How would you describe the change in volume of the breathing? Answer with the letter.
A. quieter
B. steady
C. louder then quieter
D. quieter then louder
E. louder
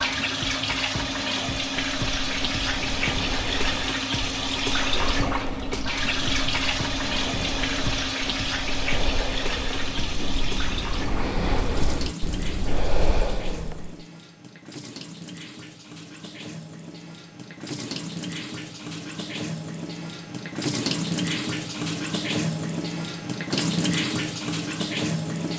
E.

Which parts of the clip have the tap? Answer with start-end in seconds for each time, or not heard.
0.0-25.5.